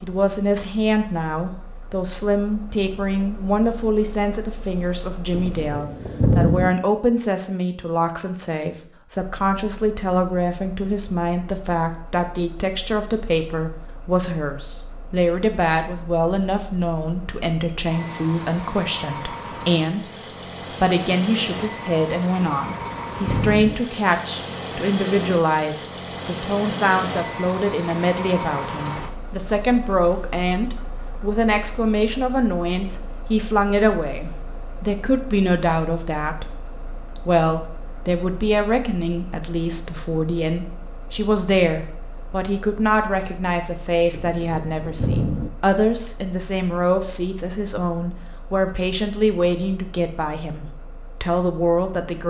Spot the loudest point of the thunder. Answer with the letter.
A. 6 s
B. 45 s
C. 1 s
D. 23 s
A.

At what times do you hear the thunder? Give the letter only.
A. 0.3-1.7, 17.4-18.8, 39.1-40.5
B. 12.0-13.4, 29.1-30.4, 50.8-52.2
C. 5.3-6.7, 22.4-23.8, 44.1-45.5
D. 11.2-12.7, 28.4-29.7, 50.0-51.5
C.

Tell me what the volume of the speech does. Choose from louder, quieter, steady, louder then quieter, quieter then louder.
steady.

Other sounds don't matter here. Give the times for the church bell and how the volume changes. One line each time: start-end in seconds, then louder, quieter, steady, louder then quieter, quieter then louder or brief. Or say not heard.
not heard.